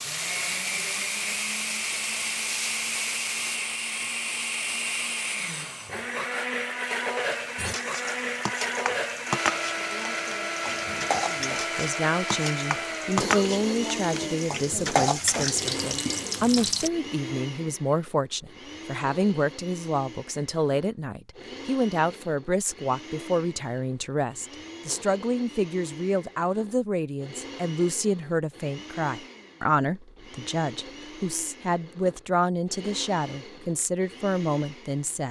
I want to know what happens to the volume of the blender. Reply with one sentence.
The volume of the blender goes down.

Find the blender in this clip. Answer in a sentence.
You can hear the blender from 0.0 to 35.2 s.